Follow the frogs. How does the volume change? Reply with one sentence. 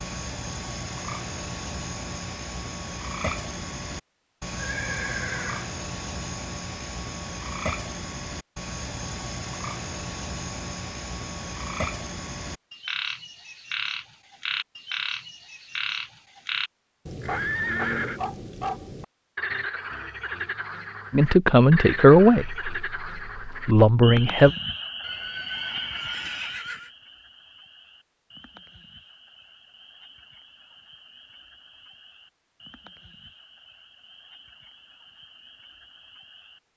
The volume of the frogs goes down.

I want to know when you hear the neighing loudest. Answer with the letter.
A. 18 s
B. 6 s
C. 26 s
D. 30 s
A.